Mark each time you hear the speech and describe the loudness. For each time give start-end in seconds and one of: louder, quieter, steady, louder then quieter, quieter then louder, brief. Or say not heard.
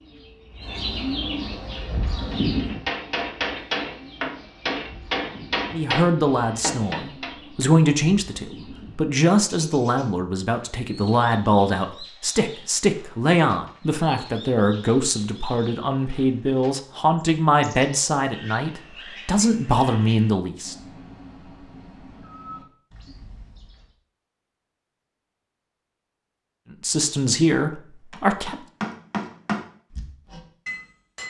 5.7-20.8 steady
26.8-28.6 brief.